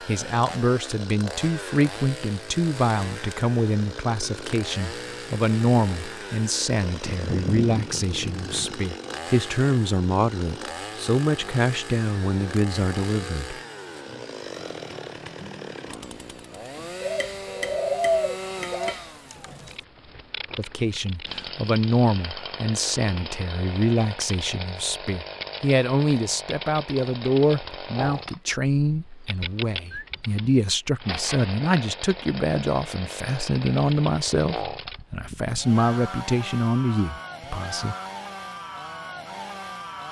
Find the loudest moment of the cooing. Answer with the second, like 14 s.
18 s.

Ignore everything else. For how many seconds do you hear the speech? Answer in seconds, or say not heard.
31 s.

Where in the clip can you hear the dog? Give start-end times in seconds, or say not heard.
not heard.